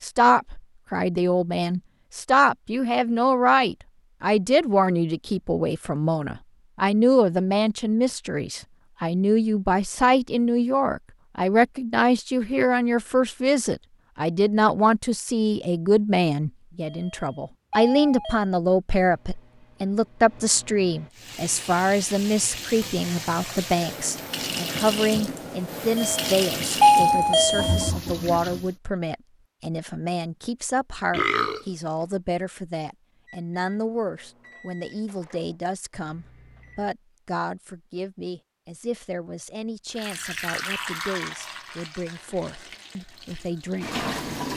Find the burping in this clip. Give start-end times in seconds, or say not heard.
31.1-31.6.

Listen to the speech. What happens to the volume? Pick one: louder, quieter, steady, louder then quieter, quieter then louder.
quieter.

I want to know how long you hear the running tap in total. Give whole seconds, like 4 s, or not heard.
12 s.